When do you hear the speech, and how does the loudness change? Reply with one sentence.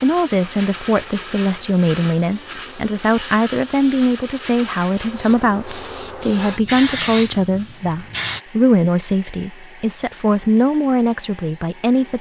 The speech can be heard from 0.0 to 12.1 s, at a steady volume.